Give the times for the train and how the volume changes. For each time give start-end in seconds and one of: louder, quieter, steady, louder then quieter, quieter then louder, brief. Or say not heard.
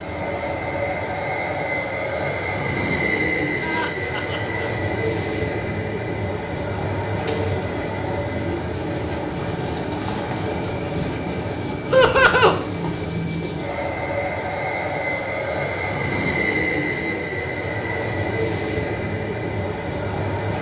0.0-20.5 steady.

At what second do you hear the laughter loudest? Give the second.
12 s.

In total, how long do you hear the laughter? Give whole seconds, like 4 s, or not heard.
2 s.